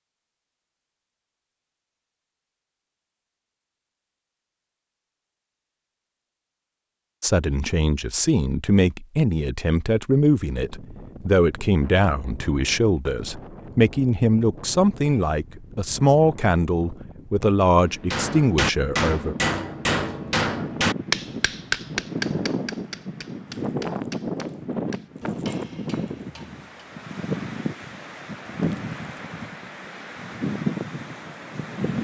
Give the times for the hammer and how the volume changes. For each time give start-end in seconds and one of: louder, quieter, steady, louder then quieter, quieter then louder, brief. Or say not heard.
17.9-26.6 quieter.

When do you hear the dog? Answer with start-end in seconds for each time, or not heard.
not heard.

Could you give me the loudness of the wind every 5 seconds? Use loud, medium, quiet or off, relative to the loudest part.
off, off, quiet, quiet, loud, loud, loud.